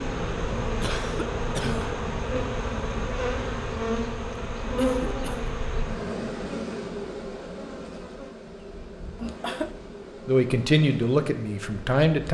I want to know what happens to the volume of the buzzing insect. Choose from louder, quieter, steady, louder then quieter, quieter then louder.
quieter.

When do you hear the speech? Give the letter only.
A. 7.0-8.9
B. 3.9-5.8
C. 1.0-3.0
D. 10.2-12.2
D.